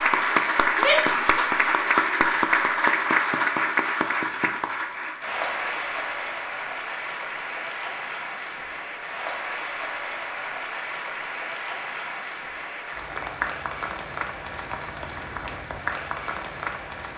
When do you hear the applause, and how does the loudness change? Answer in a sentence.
The applause can be heard from 0.0 to 17.1 s, getting quieter.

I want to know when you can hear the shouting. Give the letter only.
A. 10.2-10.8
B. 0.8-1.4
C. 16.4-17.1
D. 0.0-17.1
B.